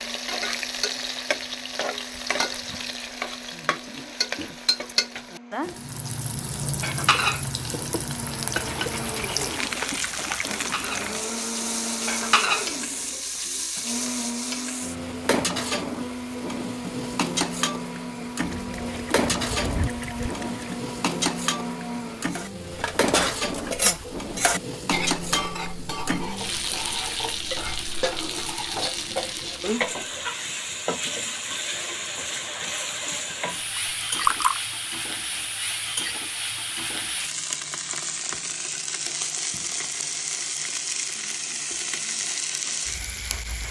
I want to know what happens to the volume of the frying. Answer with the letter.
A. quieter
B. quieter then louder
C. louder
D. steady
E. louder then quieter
D.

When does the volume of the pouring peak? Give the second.
34 s.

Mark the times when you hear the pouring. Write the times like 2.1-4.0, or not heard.
8.6-10.9, 18.4-20.8, 33.8-34.6.